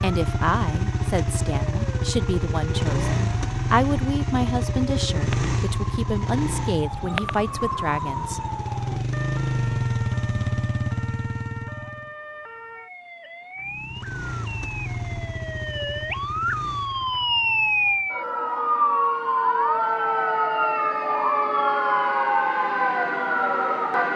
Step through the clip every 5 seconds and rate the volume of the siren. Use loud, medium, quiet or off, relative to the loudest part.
quiet, medium, quiet, loud, loud.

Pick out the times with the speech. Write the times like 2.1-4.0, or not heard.
0.0-8.4.